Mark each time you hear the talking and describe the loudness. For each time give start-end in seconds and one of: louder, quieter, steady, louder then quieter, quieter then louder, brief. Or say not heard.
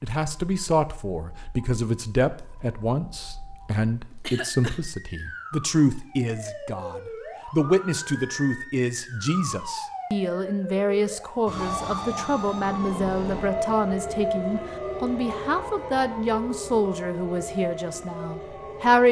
0.0-19.0 steady.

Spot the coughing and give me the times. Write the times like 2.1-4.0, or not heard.
4.2-4.8.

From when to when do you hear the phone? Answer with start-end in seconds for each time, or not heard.
not heard.